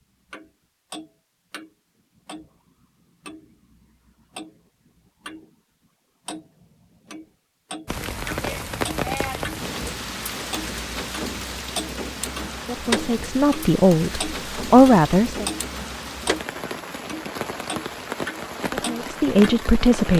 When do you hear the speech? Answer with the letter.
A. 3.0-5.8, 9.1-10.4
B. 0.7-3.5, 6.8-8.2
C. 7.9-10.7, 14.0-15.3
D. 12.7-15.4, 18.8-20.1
D.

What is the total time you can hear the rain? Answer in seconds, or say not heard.
12 s.